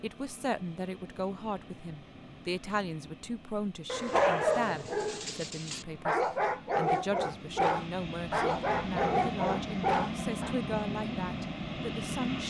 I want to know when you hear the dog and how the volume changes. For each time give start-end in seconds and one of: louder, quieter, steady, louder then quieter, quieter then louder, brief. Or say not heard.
3.9-10.6 steady.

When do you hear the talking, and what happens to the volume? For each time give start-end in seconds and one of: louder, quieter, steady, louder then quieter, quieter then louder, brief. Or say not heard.
0.0-12.4 steady.